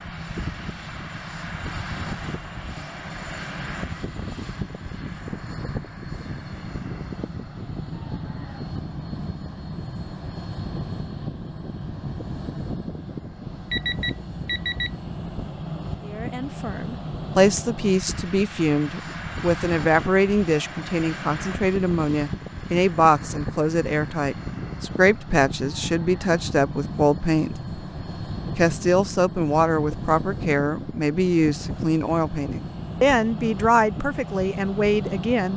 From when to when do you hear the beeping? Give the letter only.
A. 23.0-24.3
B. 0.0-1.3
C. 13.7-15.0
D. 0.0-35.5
C.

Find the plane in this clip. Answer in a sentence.
You can hear the plane from 0.0 to 35.5 s.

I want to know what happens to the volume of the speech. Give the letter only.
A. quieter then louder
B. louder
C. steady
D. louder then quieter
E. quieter
C.